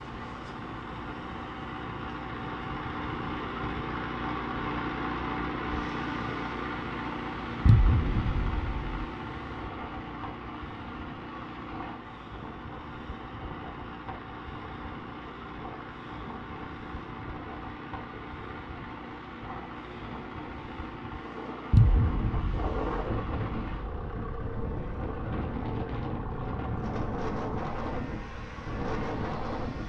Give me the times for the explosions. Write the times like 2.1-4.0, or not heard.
7.7-9.0, 21.7-22.9.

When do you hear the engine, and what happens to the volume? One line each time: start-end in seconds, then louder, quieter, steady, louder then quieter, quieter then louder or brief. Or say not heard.
0.0-29.8 quieter.